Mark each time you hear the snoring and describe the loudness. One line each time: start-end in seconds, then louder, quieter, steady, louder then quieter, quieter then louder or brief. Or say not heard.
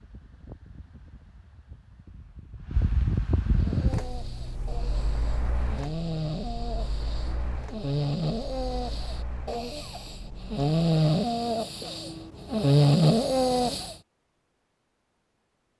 3.5-13.9 louder.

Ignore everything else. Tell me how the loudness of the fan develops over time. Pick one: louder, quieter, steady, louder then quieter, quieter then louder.
louder then quieter.